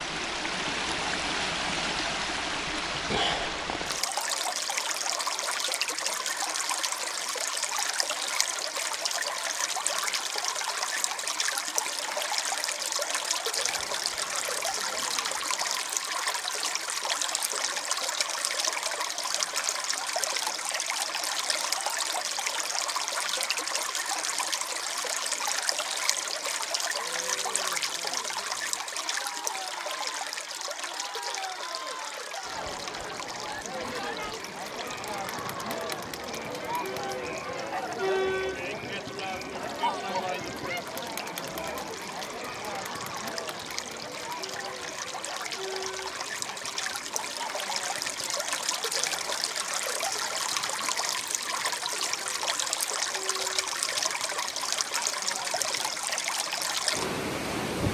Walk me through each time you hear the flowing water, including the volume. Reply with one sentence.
You can hear the flowing water from 0.0 to 57.8 s, getting quieter then louder.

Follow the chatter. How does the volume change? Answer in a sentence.
The loudness of the chatter goes up, then down.